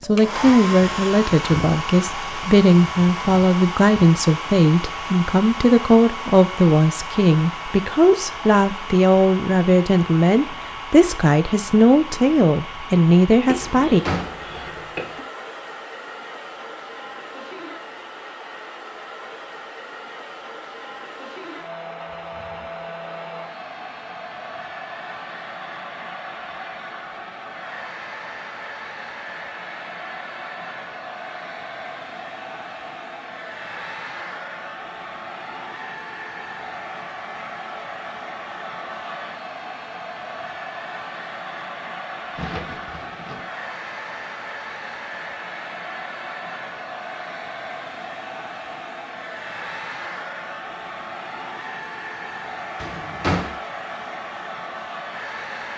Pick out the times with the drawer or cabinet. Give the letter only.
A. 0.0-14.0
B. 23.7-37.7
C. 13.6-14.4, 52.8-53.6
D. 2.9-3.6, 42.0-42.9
C.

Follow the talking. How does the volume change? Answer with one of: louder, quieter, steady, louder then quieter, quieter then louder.
steady.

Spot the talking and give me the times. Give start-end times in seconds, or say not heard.
0.0-14.0.